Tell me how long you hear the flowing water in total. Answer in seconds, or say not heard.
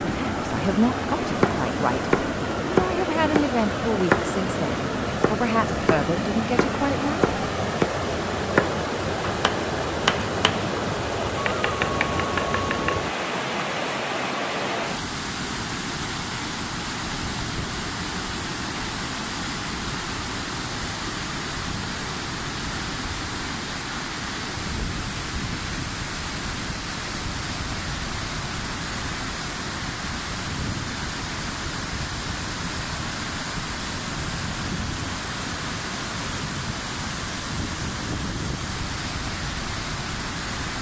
41 s.